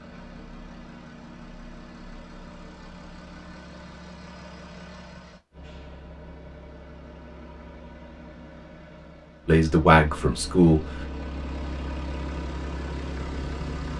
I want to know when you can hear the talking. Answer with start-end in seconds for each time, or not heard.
9.4-11.1.